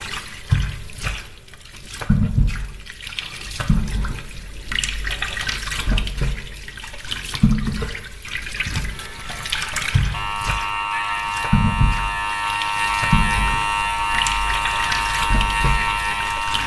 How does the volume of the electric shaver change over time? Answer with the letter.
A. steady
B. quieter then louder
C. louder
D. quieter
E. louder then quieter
C.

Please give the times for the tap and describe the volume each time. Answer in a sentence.
The tap can be heard from 0.0 to 16.6 s, at a steady volume.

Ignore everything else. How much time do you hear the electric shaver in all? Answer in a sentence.
You can hear the electric shaver for 8 seconds altogether.